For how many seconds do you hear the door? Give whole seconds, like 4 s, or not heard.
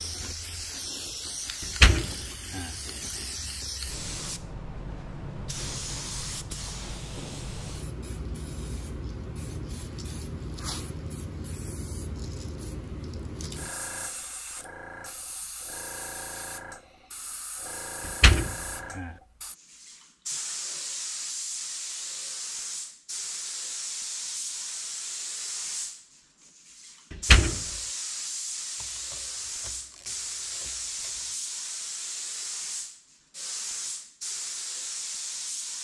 3 s.